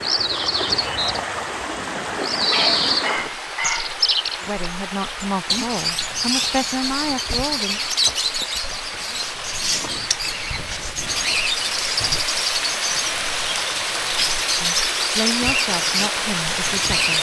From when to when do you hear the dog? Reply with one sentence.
The dog can be heard from 2.5 to 4.0 s.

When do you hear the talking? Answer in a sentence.
You can hear the talking from 4.4 to 7.8 s and from 14.6 to 17.1 s.